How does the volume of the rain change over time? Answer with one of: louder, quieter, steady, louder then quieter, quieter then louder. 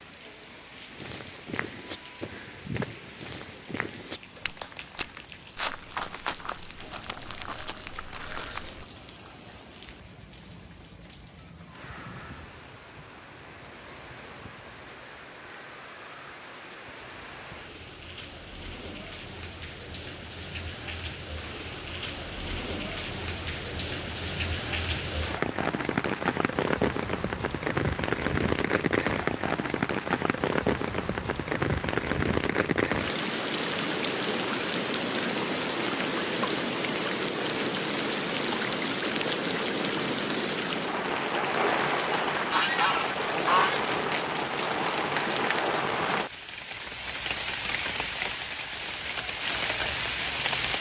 louder.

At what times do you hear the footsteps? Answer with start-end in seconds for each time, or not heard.
0.9-8.8.